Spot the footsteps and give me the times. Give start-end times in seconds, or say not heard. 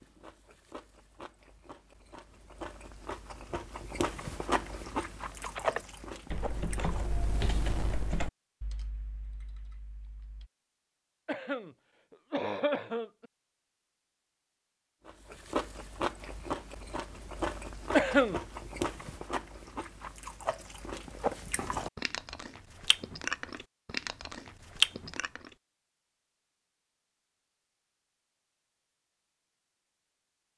not heard.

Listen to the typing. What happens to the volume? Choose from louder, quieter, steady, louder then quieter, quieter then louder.
quieter.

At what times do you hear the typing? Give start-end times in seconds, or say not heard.
5.3-10.5.